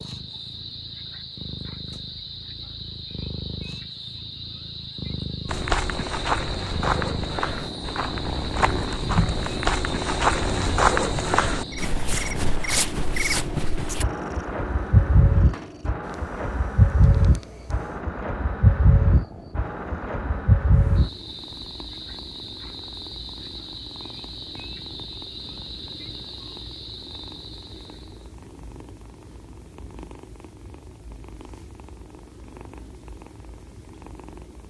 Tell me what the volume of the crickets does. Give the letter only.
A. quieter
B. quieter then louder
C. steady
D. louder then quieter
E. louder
D.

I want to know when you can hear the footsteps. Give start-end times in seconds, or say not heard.
5.5-14.1.